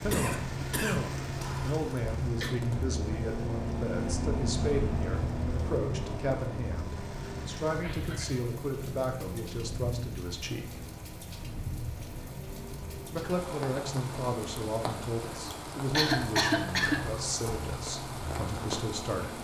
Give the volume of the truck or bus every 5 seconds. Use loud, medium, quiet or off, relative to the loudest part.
loud, loud, medium, medium.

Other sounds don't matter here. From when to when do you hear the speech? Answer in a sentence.
You can hear the speech from 0.0 to 10.8 s and from 13.2 to 19.4 s.